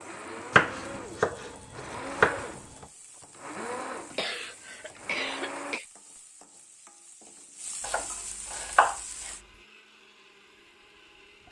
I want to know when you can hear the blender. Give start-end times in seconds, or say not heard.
0.0-5.8, 8.1-11.4.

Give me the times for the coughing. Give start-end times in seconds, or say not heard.
3.9-5.8.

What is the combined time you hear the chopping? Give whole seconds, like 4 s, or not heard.
4 s.